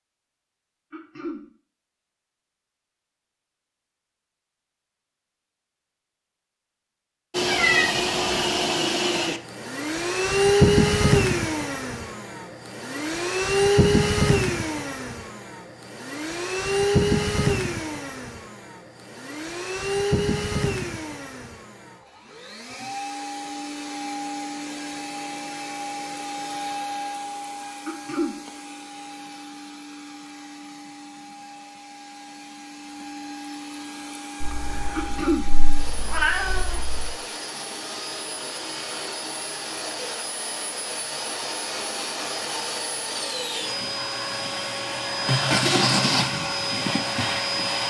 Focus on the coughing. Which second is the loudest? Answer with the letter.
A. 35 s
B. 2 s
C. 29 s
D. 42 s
A.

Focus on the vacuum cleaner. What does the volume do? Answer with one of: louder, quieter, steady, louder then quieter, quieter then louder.
quieter then louder.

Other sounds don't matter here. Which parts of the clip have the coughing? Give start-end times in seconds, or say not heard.
0.9-1.4, 27.9-28.4, 35.0-35.5.